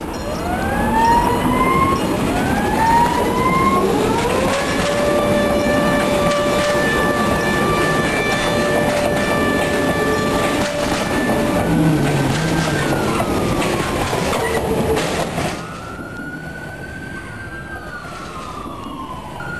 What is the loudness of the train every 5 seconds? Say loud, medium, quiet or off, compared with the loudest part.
loud, loud, loud, medium.